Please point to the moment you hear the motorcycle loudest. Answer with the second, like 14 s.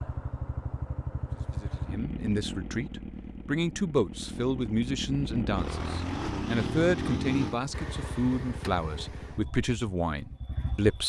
7 s.